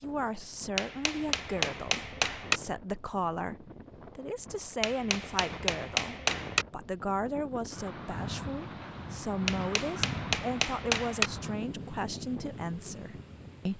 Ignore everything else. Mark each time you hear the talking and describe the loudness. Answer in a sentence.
The talking can be heard from 0.0 to 13.7 s, at a steady volume.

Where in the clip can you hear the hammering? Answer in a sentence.
The hammering can be heard from 0.8 to 2.6 s, from 4.8 to 6.7 s and from 9.4 to 11.3 s.